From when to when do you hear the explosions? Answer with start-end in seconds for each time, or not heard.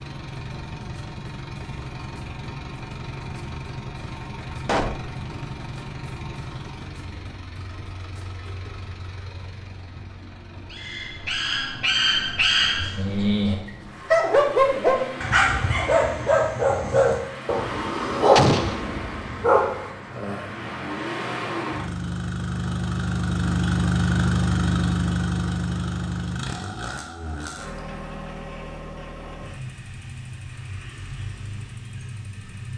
4.7-5.1, 18.4-18.8.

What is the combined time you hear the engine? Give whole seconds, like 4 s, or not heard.
33 s.